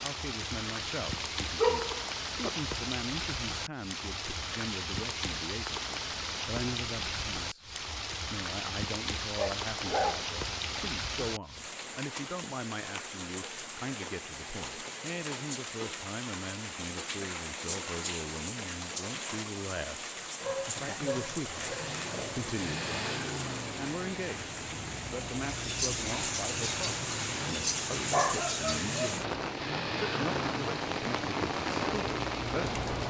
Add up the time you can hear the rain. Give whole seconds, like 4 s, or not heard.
33 s.